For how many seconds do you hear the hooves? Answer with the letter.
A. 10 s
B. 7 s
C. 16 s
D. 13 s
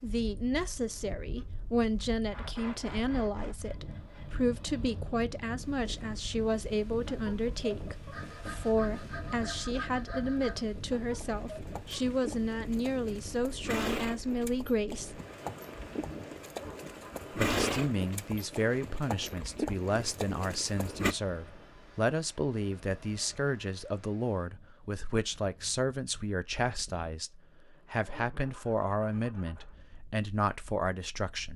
A.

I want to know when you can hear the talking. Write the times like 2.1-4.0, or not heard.
0.0-15.2, 17.3-31.5.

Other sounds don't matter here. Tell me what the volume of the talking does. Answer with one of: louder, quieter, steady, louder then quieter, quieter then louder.
steady.